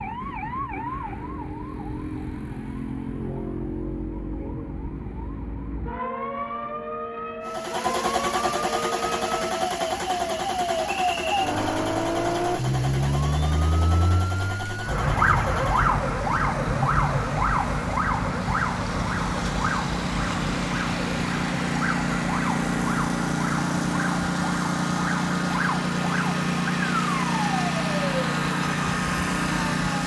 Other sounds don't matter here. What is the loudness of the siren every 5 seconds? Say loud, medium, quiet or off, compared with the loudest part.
medium, medium, loud, loud, medium, medium.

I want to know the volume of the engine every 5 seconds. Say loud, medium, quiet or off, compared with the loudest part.
off, loud, medium, medium, loud, loud.